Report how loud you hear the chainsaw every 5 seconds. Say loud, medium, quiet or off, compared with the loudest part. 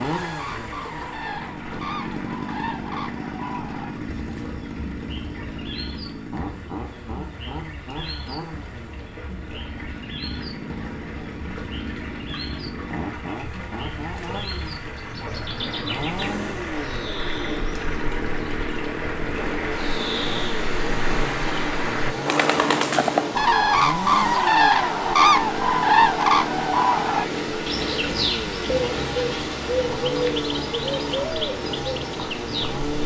loud, medium, medium, loud, loud, loud, loud.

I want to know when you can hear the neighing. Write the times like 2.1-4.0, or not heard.
15.6-17.6.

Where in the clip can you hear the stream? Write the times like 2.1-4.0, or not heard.
0.0-33.0.